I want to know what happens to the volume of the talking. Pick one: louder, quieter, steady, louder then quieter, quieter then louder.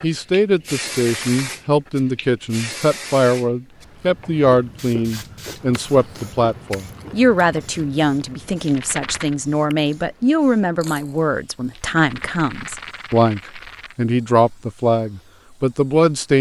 steady.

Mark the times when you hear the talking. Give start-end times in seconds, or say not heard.
0.0-16.3.